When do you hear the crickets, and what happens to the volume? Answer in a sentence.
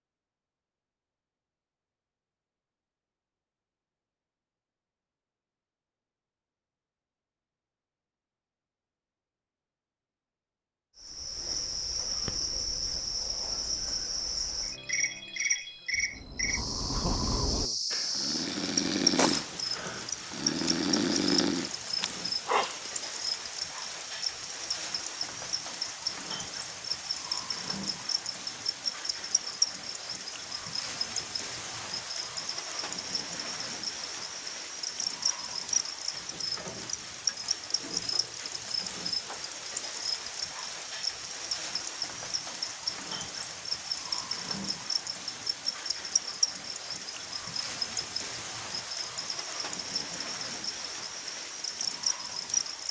You can hear the crickets from 10.9 to 52.8 s, at a steady volume.